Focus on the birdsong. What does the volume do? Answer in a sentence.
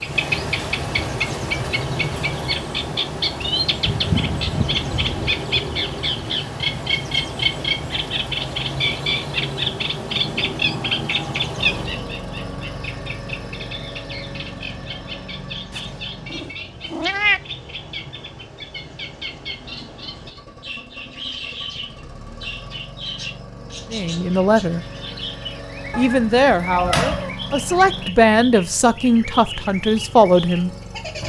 The volume of the birdsong goes down.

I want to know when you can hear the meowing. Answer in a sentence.
The meowing can be heard from 3.9 to 5.3 s, from 15.7 to 17.4 s and from 25.9 to 27.4 s.